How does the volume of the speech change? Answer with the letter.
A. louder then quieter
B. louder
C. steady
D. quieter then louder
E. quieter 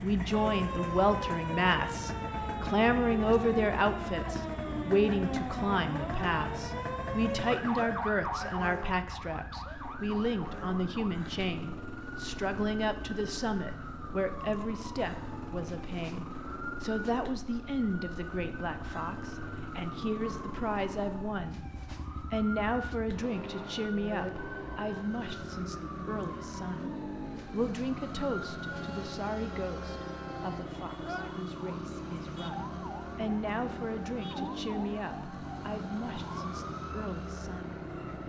E.